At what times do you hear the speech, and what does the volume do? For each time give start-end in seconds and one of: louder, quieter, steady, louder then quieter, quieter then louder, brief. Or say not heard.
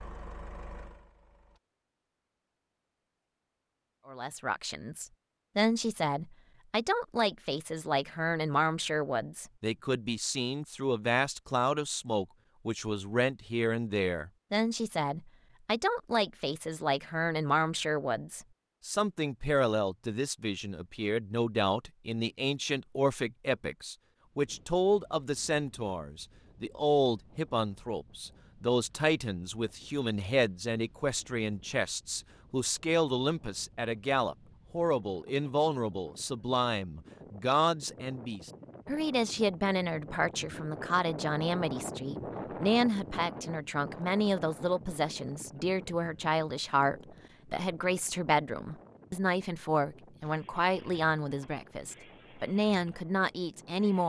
4.0-54.0 steady.